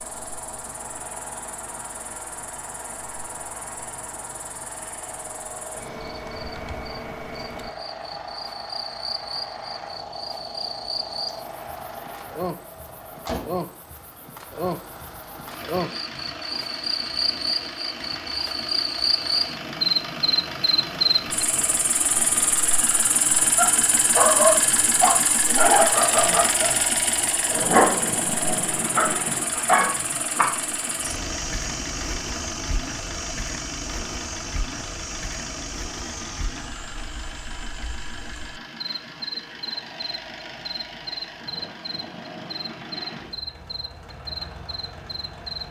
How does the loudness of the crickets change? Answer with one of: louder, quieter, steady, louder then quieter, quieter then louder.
louder then quieter.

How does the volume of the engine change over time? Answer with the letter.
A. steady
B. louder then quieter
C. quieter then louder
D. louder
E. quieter
B.